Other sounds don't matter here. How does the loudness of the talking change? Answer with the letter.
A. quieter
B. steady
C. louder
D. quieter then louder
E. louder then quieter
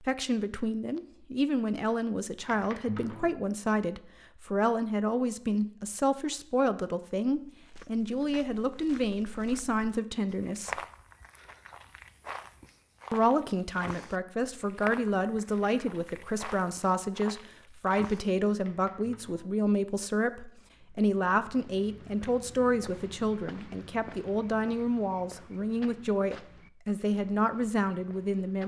B.